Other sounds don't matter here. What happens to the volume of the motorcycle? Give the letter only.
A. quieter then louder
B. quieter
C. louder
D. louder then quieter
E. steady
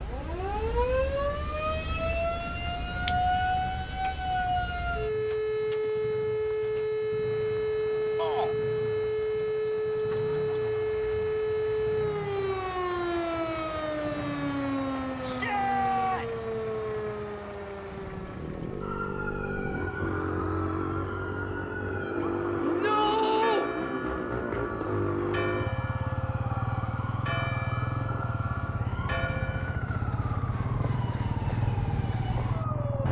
C.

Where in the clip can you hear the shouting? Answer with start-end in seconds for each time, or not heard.
8.2-8.6, 15.2-16.4, 22.6-23.6.